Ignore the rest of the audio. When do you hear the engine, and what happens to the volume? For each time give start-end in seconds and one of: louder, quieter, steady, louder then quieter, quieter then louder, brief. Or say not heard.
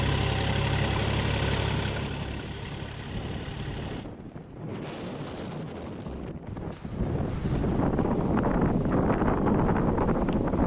0.0-4.1 quieter.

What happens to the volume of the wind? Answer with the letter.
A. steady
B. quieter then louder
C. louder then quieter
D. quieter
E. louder
E.